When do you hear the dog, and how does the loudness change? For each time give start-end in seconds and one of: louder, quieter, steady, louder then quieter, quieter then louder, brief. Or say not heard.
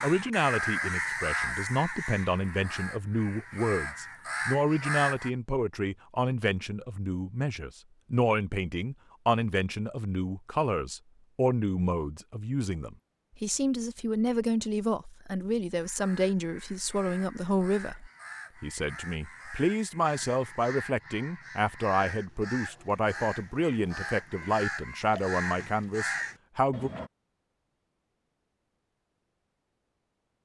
not heard.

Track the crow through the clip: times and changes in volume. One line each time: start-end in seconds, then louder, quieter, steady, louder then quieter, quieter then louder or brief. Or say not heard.
0.0-5.3 quieter then louder
15.8-27.1 louder.